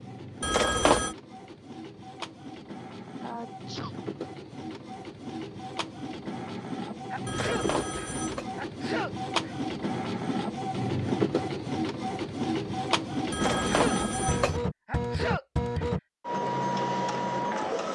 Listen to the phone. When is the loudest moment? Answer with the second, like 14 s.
1 s.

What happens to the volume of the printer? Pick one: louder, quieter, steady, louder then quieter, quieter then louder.
louder.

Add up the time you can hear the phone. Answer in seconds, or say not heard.
3 s.